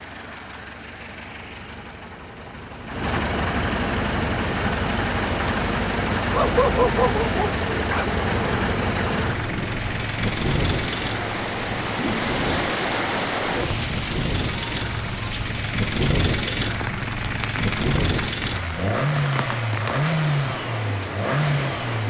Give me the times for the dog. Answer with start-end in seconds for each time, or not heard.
6.2-8.1.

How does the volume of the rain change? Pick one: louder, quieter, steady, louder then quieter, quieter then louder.
louder then quieter.